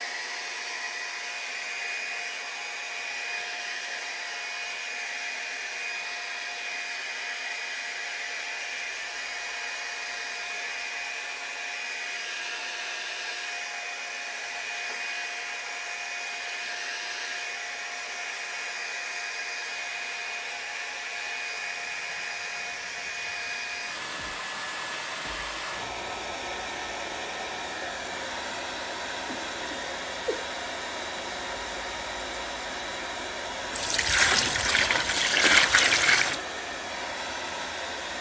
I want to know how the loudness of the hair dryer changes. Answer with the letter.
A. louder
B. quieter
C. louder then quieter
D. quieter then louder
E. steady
E.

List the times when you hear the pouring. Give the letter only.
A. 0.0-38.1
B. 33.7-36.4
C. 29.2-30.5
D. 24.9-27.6
B.